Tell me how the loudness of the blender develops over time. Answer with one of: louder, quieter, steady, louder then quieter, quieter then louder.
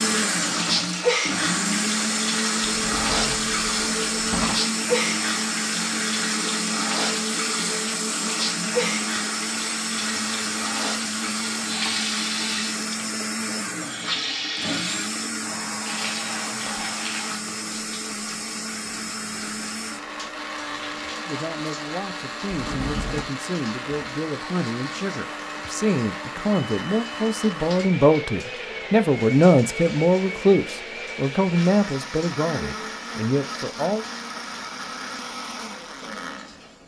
quieter.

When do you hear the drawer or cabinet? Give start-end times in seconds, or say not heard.
2.6-4.6, 22.5-23.3.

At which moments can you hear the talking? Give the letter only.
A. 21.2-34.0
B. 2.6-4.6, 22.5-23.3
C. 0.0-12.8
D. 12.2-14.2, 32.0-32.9
A.